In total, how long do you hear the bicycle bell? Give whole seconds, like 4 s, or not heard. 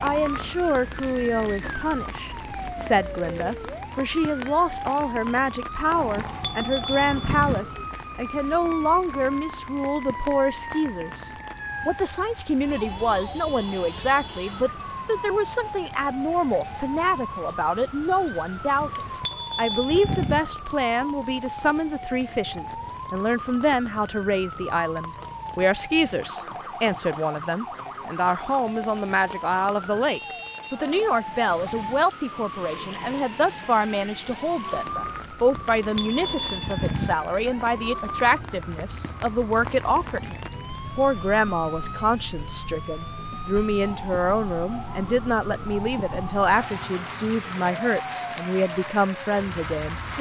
5 s.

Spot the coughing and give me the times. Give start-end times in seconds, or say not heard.
not heard.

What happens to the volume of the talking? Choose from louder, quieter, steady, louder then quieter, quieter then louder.
steady.